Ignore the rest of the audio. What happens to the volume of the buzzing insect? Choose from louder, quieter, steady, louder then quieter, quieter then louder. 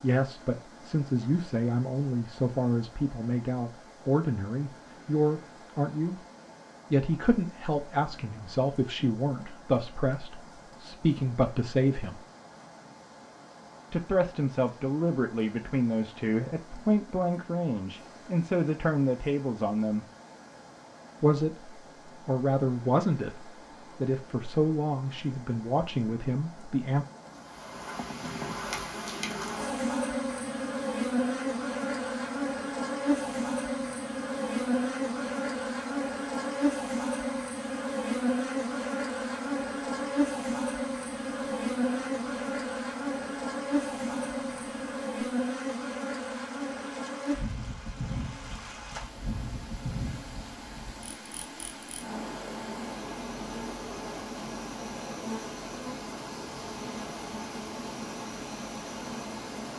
quieter.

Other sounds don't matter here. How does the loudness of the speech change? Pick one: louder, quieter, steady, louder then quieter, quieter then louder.
steady.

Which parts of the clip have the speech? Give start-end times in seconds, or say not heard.
0.0-6.2, 6.9-12.2, 13.9-20.1, 21.2-27.1.